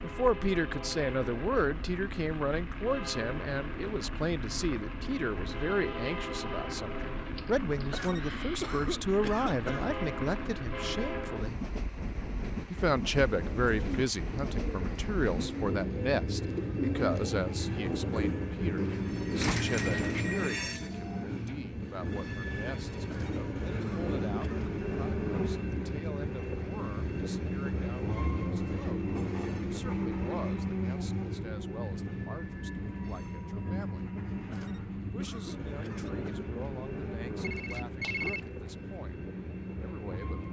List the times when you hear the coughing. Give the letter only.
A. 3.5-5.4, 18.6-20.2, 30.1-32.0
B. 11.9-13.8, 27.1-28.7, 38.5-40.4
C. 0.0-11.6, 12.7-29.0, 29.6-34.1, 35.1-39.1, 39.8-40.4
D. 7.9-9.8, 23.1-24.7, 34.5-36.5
D.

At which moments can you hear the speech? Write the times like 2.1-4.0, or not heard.
0.0-11.6, 12.7-29.0, 29.6-34.1, 35.1-39.1, 39.8-40.4.